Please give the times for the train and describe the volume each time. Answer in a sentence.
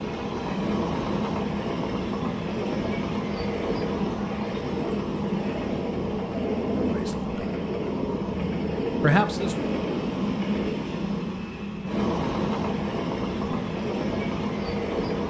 You can hear the train from 0.0 to 15.2 s, at a steady volume.